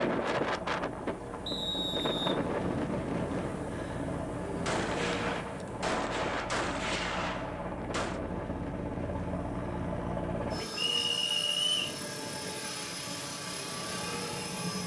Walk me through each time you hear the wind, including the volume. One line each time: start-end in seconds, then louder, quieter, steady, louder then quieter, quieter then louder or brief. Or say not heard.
0.0-14.8 quieter.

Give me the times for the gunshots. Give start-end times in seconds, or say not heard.
4.7-8.2.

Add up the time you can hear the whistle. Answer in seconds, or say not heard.
2 s.